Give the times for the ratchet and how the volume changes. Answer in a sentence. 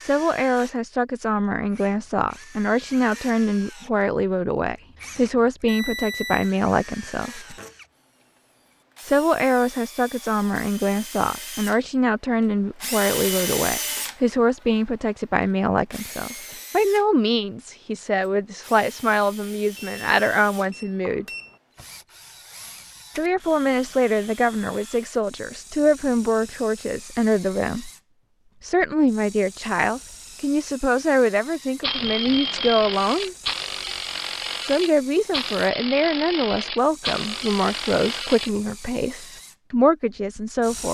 You can hear the ratchet from 31.8 to 38.5 s, at a steady volume.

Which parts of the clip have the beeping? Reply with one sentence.
You can hear the beeping from 5.7 to 6.5 s, from 19.8 to 21.6 s and from 31.9 to 33.0 s.